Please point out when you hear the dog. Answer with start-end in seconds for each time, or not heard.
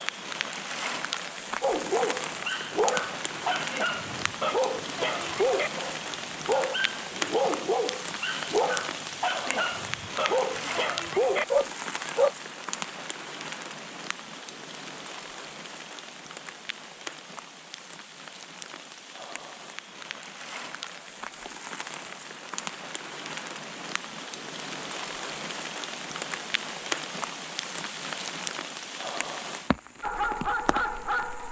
1.6-12.3, 30.0-31.4.